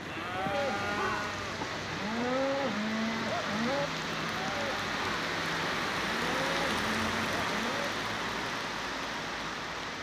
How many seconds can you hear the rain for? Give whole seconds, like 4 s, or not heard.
10 s.